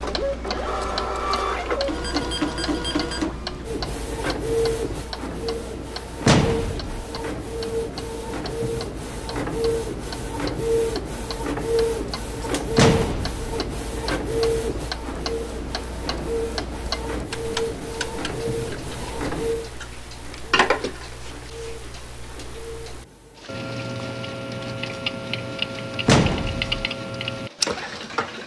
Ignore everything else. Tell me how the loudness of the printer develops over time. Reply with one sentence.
The volume of the printer goes down.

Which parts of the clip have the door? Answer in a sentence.
You can hear the door from 6.2 to 7.0 s, from 12.8 to 13.4 s and from 26.1 to 26.7 s.